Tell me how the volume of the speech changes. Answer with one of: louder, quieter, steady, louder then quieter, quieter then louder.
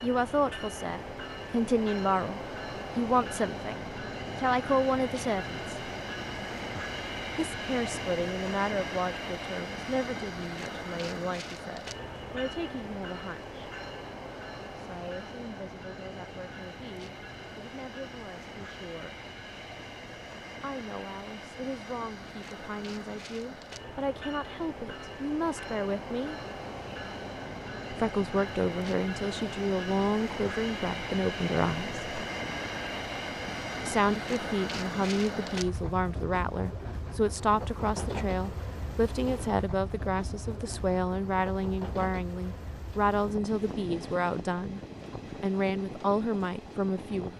quieter then louder.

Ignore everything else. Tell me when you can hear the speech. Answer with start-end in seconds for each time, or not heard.
0.0-5.9, 7.3-13.6, 14.8-19.2, 20.6-26.4, 27.9-32.0, 33.8-47.3.